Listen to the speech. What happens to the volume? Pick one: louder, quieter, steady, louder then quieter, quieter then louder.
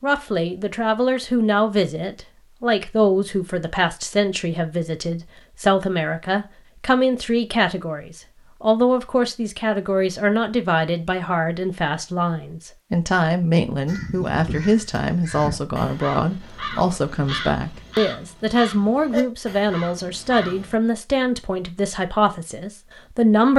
steady.